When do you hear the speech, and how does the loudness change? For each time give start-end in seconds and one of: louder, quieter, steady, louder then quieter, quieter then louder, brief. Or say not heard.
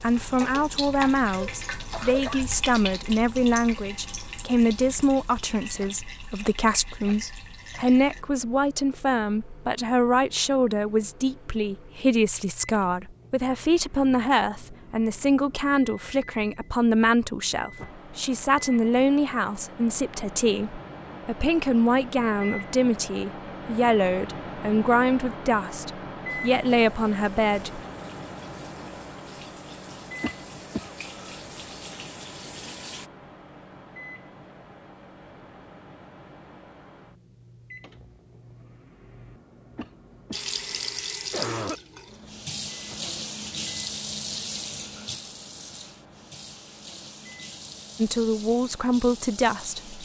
0.0-27.8 steady
48.0-49.9 brief.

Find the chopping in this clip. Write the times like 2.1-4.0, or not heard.
not heard.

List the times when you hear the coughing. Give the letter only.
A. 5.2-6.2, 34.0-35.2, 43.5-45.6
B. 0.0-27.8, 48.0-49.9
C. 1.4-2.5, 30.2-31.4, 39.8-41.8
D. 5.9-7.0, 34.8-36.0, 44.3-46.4
C.